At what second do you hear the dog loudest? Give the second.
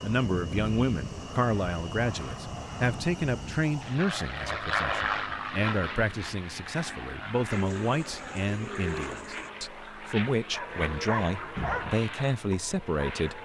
12 s.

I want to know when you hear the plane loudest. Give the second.
5 s.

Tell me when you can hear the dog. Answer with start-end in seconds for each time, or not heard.
10.5-13.4.